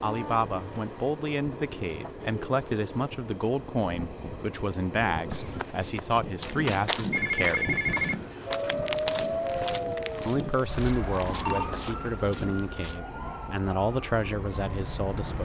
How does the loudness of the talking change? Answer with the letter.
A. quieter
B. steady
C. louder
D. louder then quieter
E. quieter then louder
B.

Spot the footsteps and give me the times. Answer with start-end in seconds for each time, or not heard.
5.3-13.0.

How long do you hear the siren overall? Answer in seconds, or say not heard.
7 s.